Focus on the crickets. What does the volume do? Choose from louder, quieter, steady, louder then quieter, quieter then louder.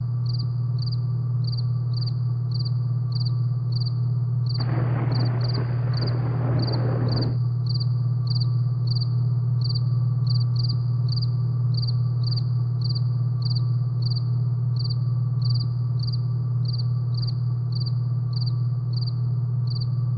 steady.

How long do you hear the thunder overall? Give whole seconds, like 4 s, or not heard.
3 s.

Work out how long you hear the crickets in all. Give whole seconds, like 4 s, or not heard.
20 s.